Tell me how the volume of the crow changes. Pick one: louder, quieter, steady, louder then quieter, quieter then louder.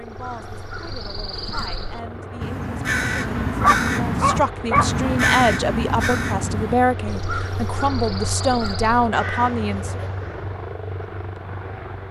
louder then quieter.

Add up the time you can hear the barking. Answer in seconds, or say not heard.
2 s.